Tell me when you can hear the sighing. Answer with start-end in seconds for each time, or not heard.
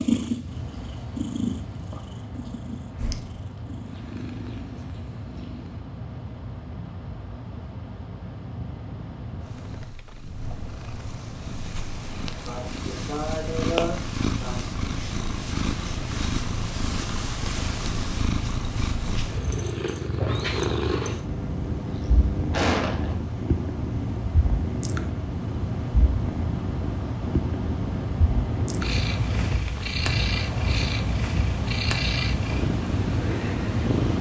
12.4-14.6, 21.2-23.1.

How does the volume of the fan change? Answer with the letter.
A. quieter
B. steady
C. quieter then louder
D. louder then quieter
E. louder
E.